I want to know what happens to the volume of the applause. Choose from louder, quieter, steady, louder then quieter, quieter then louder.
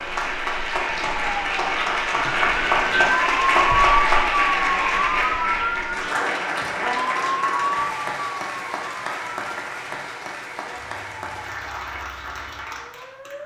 quieter.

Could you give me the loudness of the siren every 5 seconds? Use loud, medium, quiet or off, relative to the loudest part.
loud, loud, quiet.